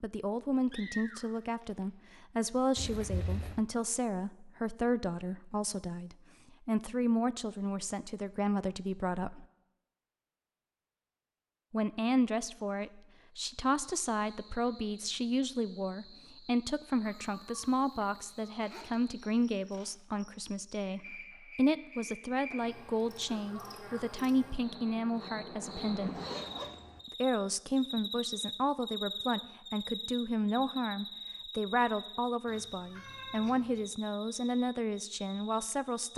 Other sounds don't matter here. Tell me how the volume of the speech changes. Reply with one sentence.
The loudness of the speech stays about the same.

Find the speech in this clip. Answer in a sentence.
The speech can be heard from 0.0 to 9.4 s, from 11.7 to 26.2 s and from 27.2 to 36.1 s.